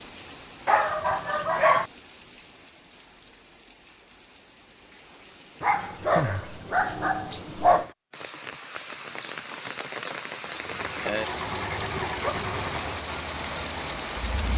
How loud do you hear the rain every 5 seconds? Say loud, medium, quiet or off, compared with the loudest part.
quiet, medium, loud.